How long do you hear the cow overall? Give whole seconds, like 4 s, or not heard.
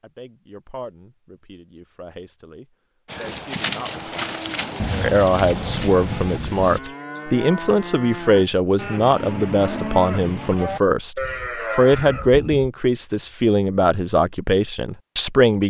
10 s.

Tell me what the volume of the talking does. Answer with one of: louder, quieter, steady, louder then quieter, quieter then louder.
louder.